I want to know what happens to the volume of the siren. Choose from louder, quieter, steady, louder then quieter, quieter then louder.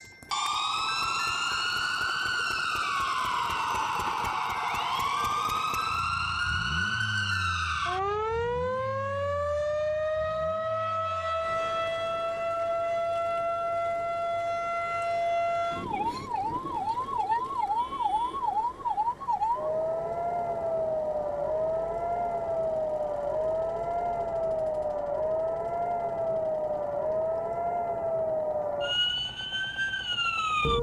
steady.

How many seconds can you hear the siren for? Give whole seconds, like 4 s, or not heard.
31 s.